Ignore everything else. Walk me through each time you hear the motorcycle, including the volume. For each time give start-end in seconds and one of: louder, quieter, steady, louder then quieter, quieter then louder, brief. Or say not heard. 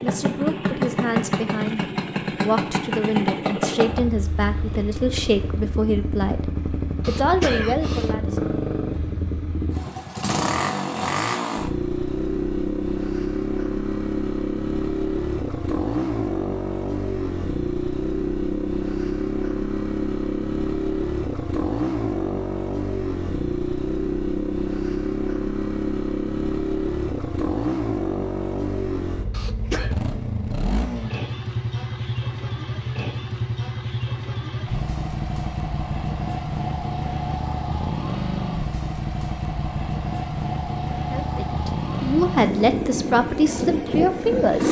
0.0-44.6 steady.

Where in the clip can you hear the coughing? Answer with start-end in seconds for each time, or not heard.
7.0-8.2, 29.3-29.9.